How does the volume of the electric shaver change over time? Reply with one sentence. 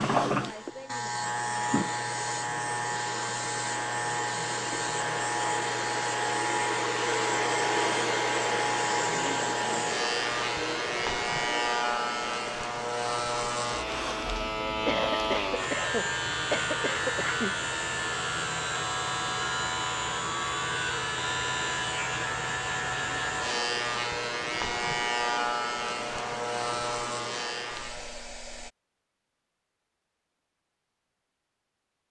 The loudness of the electric shaver stays about the same.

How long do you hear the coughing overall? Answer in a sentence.
The coughing can be heard for 3 seconds in total.